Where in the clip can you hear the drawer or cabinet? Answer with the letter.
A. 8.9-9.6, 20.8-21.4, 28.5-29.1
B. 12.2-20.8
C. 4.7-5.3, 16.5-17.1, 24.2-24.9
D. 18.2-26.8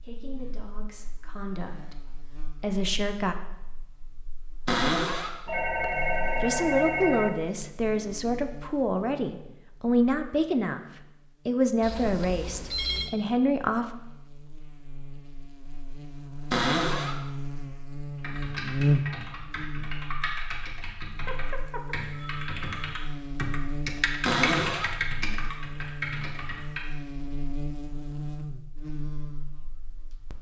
C.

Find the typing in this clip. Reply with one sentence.
The typing can be heard from 18.2 to 26.8 s.